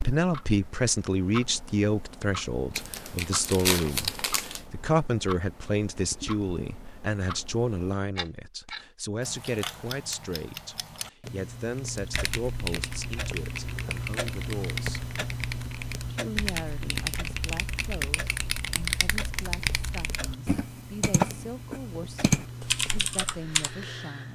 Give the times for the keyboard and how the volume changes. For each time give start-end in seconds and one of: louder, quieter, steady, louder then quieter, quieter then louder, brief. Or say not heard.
11.8-23.8 louder.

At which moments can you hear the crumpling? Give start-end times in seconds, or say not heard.
2.8-4.6.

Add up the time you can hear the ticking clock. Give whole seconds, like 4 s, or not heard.
24 s.